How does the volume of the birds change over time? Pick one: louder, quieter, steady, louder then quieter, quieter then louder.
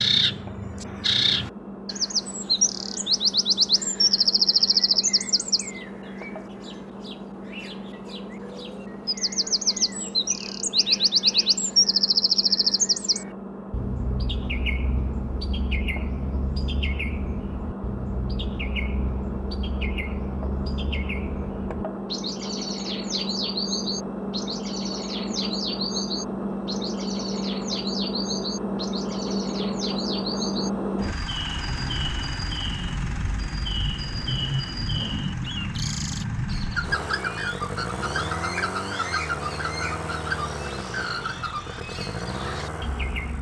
quieter.